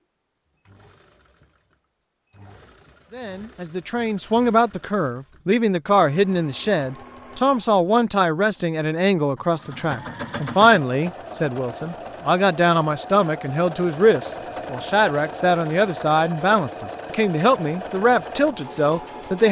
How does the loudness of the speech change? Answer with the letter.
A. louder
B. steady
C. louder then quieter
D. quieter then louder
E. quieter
B.